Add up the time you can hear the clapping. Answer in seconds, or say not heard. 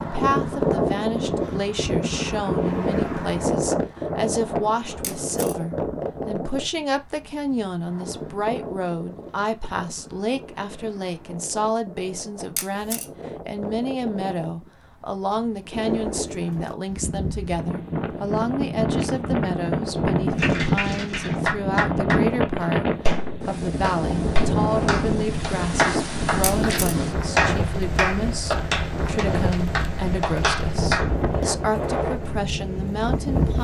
11 s.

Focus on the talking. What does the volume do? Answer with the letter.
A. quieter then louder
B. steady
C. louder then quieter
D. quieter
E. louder
B.